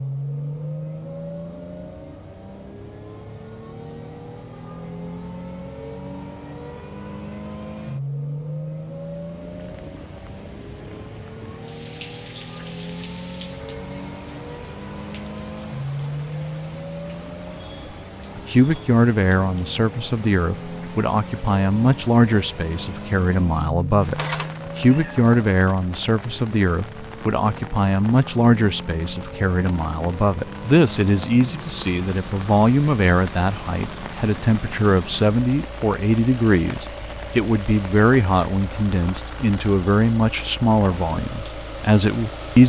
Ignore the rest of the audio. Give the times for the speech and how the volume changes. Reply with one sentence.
You can hear the speech from 18.4 to 42.6 s, at a steady volume.